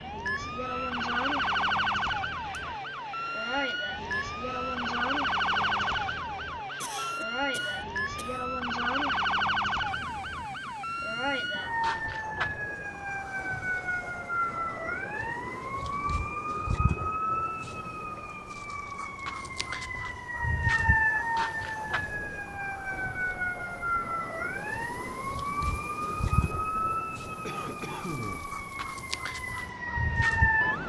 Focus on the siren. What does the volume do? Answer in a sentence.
The volume of the siren stays about the same.